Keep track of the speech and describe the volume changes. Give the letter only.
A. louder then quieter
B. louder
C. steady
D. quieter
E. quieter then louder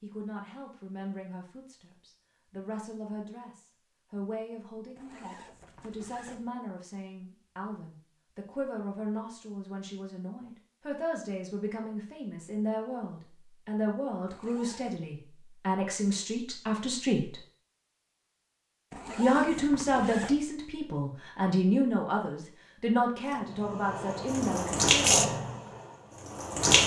B.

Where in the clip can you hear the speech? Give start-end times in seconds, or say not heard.
0.0-17.4, 19.1-25.2.